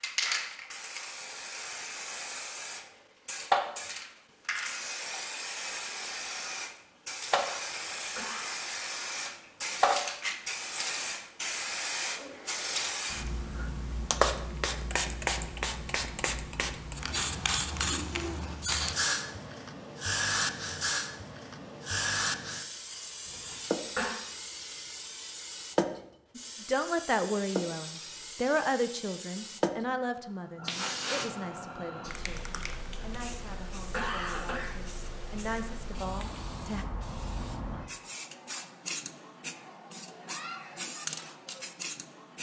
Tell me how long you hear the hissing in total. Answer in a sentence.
You can hear the hissing for 42 seconds altogether.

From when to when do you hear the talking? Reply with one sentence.
The talking can be heard from 26.4 to 36.9 s.